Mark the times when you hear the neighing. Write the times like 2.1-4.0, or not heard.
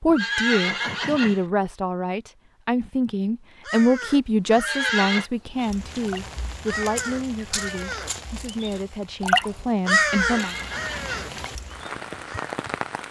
0.1-1.4, 4.5-5.3, 10.0-11.3.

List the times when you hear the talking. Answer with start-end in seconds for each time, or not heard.
0.0-10.6.